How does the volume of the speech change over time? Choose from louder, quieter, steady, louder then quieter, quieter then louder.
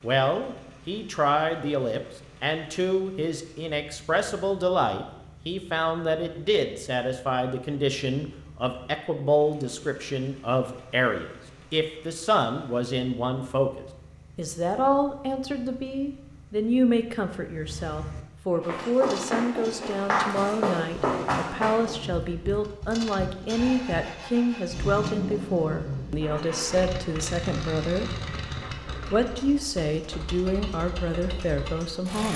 steady.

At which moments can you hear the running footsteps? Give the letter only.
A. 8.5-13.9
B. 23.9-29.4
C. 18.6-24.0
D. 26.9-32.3
C.